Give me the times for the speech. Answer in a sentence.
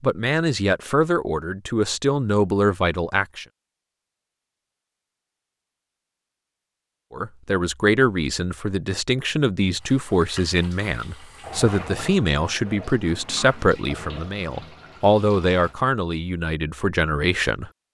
The speech can be heard from 0.0 to 3.5 s and from 7.1 to 17.9 s.